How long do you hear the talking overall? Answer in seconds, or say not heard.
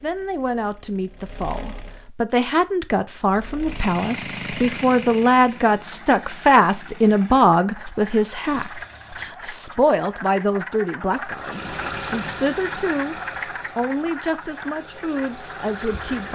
16 s.